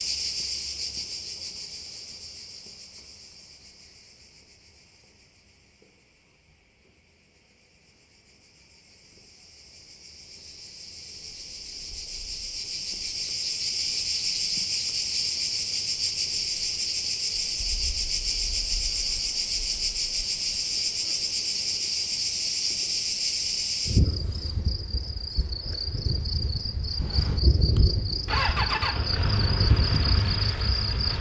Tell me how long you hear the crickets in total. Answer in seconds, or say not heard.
31 s.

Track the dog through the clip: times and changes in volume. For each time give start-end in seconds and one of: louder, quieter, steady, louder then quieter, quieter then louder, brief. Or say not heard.
not heard.